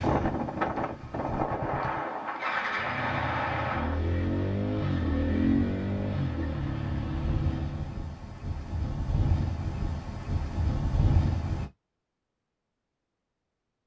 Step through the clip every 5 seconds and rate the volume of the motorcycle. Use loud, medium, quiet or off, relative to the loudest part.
loud, loud, off.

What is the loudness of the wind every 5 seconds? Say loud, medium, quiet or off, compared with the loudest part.
loud, medium, loud.